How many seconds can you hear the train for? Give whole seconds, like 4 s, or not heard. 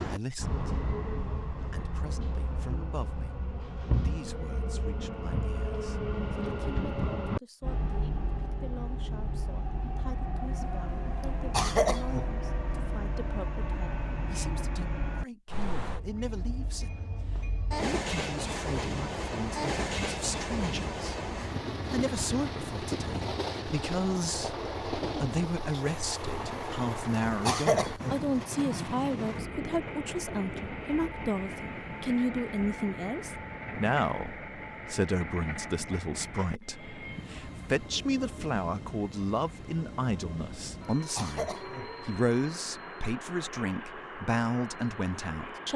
46 s.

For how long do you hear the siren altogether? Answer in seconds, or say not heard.
not heard.